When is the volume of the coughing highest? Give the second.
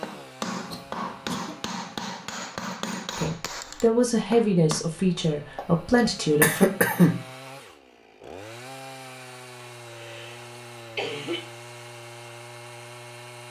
7 s.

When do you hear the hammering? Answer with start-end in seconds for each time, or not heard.
0.0-4.8.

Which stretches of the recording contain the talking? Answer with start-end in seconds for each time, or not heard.
3.1-6.7.